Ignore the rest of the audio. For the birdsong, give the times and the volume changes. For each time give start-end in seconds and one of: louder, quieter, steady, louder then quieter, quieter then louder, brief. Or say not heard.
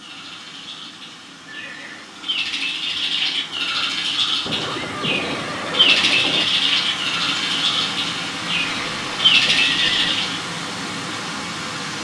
0.0-10.4 louder.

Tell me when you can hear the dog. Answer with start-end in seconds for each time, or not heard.
not heard.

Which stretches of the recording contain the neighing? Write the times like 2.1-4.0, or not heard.
1.4-2.1, 4.5-6.5, 8.4-10.2.